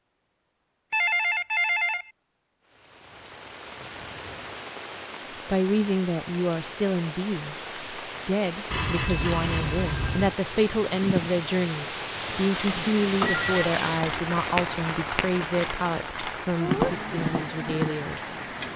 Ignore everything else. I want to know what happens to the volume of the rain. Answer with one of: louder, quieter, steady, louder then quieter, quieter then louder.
louder.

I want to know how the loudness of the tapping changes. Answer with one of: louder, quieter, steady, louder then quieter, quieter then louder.
quieter then louder.